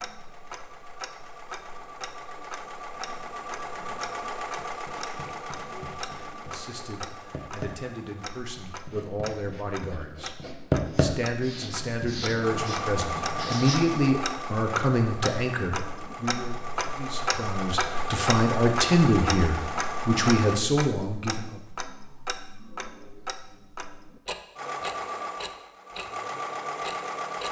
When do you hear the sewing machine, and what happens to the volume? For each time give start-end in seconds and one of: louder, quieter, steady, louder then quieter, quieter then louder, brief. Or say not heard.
0.0-8.8 louder then quieter
12.4-20.6 quieter then louder
24.6-27.4 brief.